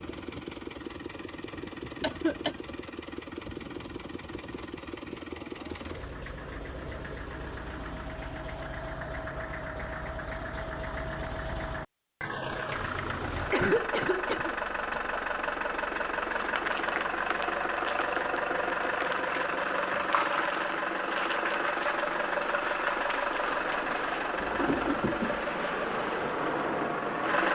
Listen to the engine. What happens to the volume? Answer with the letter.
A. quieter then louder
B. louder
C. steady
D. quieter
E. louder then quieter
B.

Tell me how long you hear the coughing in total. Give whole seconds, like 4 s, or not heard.
3 s.